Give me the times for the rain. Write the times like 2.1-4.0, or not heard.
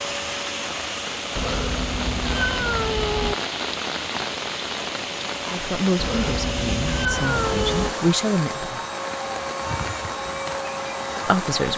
0.0-11.7.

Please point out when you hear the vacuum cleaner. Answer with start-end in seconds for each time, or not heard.
0.0-11.7.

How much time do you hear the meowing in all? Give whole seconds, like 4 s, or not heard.
4 s.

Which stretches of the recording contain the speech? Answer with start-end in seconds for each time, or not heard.
5.5-8.8, 11.2-11.7.